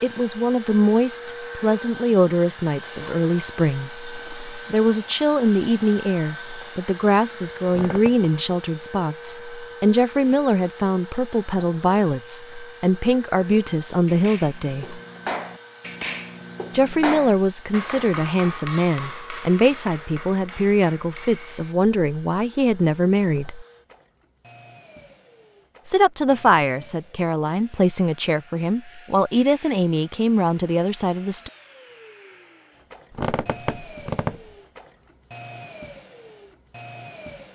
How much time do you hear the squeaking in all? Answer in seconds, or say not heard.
2 s.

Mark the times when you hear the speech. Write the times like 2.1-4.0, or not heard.
0.0-15.0, 16.7-23.6, 25.9-31.5.